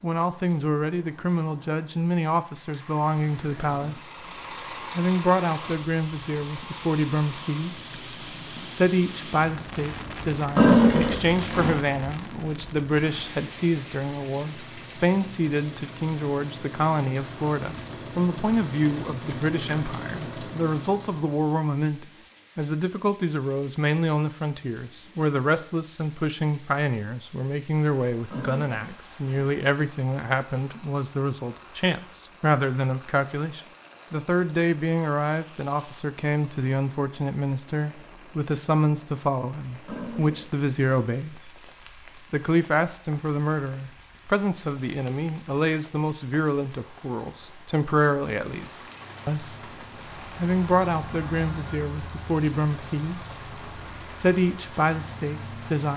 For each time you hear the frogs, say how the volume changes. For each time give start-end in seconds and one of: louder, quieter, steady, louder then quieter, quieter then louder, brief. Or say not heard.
not heard.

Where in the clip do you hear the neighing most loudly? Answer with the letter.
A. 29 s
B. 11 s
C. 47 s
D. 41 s
B.